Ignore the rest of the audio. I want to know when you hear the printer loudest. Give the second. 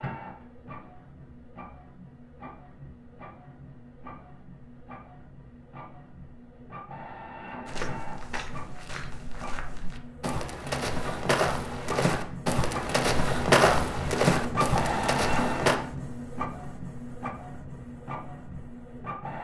15 s.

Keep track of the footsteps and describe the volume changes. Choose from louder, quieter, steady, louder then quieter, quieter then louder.
louder.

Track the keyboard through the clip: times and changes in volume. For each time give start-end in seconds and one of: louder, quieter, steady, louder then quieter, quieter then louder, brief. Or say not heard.
not heard.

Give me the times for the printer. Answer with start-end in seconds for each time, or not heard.
0.0-19.3.